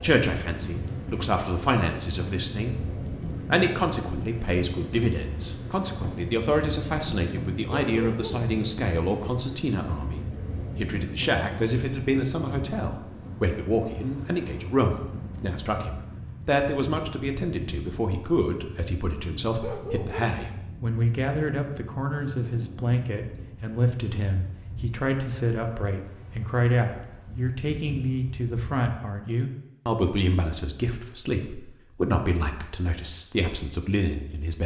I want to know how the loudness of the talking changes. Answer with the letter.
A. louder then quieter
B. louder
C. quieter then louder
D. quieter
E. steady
E.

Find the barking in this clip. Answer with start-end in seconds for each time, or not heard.
7.8-8.5, 19.6-20.4.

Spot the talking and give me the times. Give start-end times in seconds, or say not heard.
0.0-34.6.